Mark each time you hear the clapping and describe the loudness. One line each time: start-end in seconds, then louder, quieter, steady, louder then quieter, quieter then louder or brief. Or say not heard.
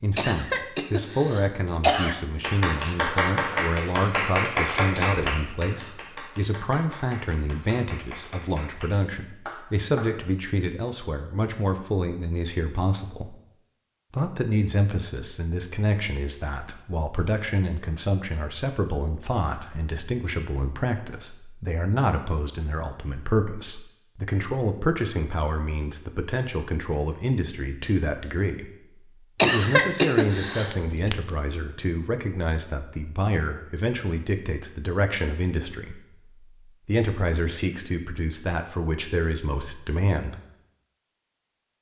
2.4-10.2 quieter.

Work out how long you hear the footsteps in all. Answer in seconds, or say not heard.
not heard.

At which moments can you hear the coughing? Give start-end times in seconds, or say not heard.
0.1-2.1, 29.4-30.8.